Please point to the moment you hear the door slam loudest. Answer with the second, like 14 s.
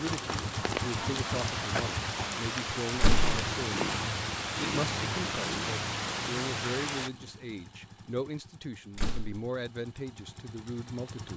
3 s.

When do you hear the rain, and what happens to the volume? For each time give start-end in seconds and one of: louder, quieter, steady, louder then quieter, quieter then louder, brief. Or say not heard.
0.0-7.1 steady.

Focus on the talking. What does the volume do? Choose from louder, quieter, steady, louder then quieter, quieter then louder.
steady.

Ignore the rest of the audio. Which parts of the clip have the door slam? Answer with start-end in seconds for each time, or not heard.
3.0-3.4, 8.9-9.4.